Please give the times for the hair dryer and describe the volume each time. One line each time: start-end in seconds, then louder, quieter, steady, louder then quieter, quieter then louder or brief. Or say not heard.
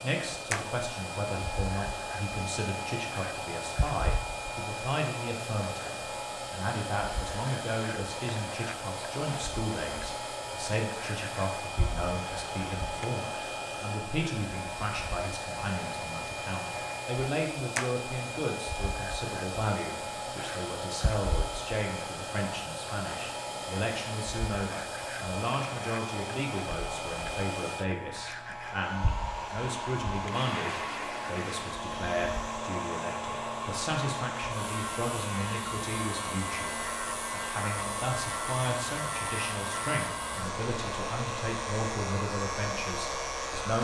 0.0-43.8 steady.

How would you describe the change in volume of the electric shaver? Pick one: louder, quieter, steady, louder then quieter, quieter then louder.
steady.